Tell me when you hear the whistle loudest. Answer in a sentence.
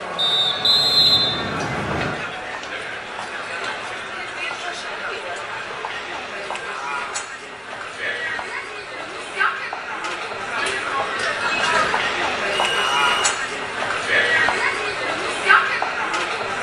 The loudest moment of the whistle is at 1 second.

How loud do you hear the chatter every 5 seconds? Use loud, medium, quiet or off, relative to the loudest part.
medium, medium, loud, loud.